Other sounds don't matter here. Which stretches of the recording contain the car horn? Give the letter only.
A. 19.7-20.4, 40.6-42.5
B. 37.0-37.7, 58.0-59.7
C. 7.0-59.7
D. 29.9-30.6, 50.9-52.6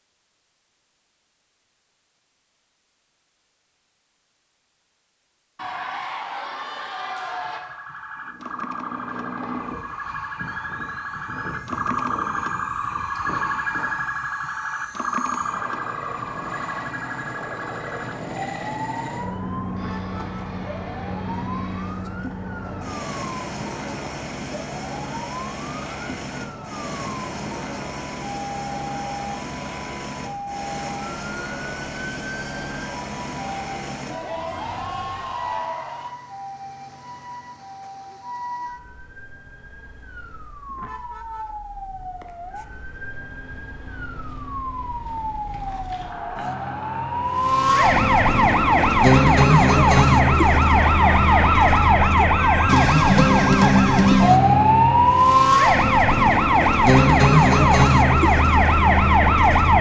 A.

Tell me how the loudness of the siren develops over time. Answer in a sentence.
The loudness of the siren goes down, then up.